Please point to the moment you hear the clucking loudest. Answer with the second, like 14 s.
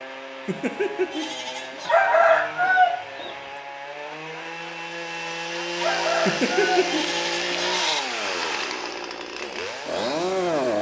2 s.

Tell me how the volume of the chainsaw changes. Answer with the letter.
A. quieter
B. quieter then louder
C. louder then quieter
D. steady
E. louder
E.